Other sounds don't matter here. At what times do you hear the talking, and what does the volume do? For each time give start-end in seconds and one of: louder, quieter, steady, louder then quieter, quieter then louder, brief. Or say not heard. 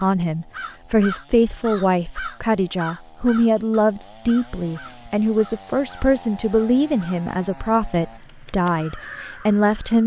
0.0-10.0 steady.